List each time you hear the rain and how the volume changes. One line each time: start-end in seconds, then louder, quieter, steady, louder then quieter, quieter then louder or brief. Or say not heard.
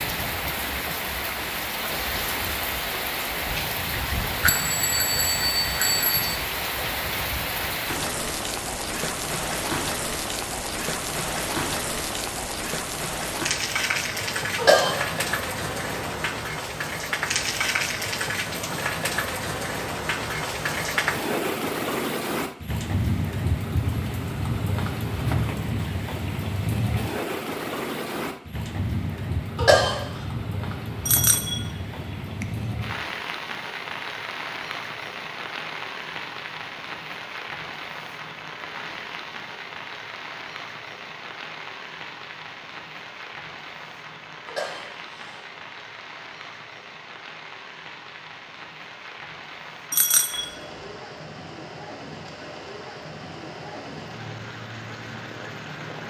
0.0-56.0 quieter.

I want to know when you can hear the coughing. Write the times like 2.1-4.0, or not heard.
14.6-15.0, 29.6-30.0, 44.5-45.4.